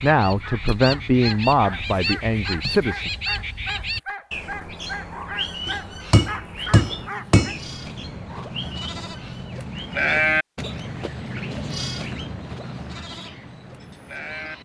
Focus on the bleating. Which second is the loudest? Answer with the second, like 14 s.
10 s.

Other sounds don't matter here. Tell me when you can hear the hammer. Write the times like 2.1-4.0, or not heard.
5.7-7.5.